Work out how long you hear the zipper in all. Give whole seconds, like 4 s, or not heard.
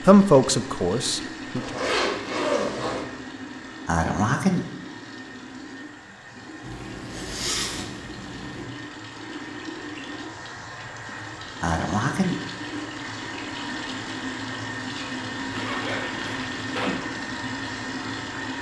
5 s.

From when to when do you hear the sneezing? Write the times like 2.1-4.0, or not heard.
3.9-4.6, 11.6-12.3.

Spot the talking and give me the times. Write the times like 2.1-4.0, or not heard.
0.1-1.8.